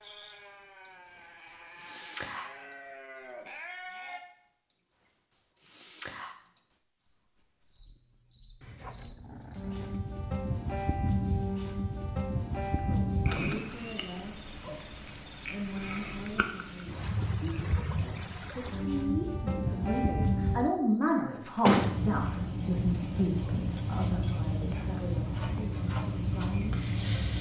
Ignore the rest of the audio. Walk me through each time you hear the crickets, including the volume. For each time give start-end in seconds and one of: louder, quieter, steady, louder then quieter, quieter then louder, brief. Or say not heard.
0.1-27.3 louder.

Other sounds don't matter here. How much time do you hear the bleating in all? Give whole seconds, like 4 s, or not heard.
4 s.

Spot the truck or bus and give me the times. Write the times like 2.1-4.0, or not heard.
not heard.